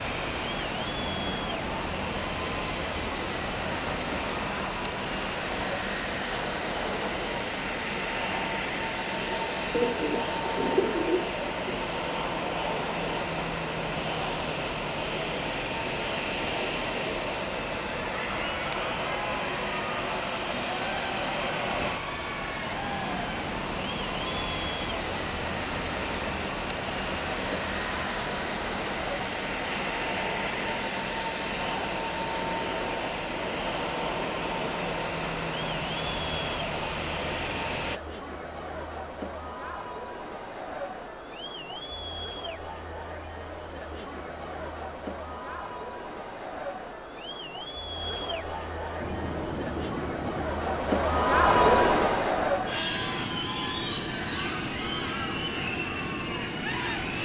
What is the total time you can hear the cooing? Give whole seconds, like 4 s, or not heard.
2 s.